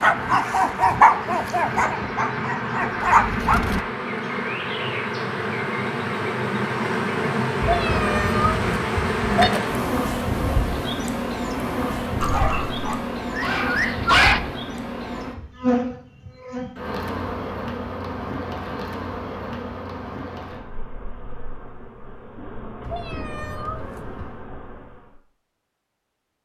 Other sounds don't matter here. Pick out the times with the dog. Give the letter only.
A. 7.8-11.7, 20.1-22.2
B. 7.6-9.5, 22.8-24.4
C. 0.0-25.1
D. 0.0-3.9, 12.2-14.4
D.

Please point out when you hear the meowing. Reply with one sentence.
You can hear the meowing from 7.6 to 9.5 s and from 22.8 to 24.4 s.